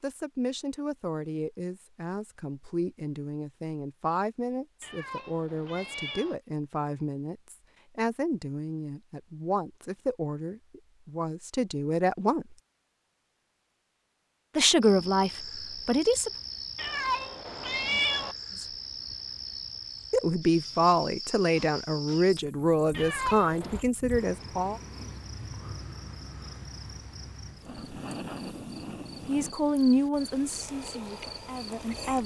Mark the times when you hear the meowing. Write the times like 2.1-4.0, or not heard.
4.8-6.3, 16.8-18.4, 22.9-23.9.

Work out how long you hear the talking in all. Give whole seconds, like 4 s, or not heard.
22 s.